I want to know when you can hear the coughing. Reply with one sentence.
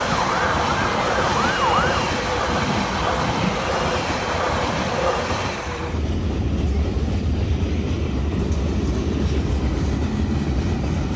The coughing can't be heard in this clip.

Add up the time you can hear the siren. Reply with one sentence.
The siren can be heard for 2 seconds in total.